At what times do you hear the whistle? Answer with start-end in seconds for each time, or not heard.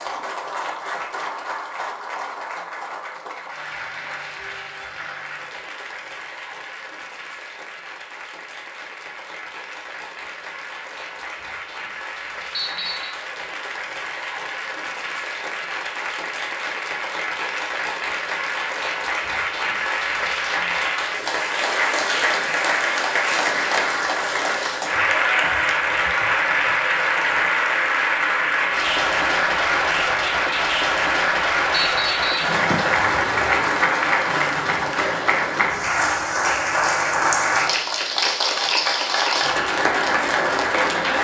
12.5-13.2, 31.7-32.5.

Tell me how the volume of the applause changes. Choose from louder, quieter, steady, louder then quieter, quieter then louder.
louder.